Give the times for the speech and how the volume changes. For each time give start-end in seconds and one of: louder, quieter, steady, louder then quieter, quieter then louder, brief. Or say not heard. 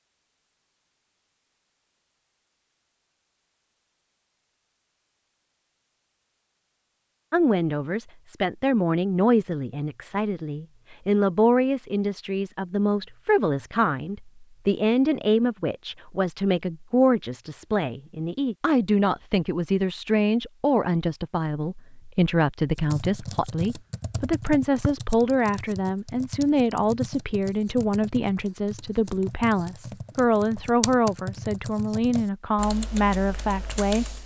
7.3-34.2 steady.